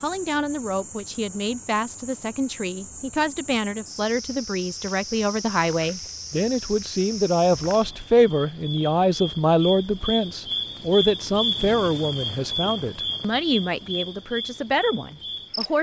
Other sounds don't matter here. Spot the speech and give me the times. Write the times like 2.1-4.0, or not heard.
0.0-15.7.